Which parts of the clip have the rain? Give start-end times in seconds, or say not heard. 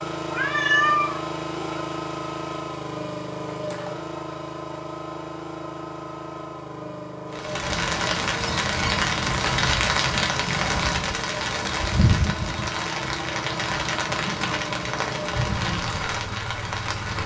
7.3-17.2.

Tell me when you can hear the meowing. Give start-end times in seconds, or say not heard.
0.3-1.8.